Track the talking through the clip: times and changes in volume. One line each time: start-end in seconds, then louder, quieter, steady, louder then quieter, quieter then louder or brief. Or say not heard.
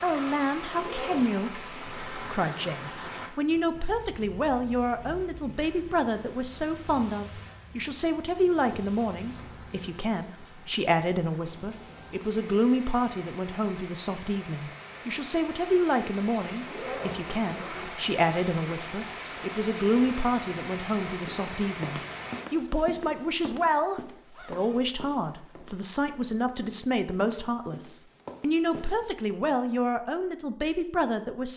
0.0-31.5 steady.